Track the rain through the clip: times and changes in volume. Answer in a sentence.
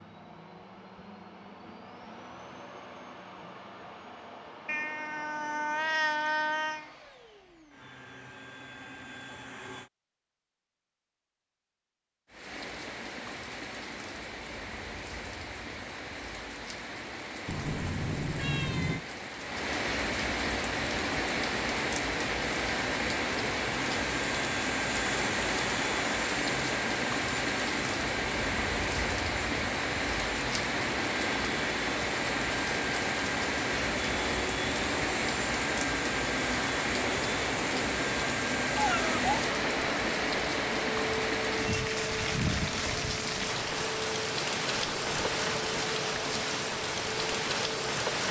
You can hear the rain from 12.2 to 48.2 s, getting louder.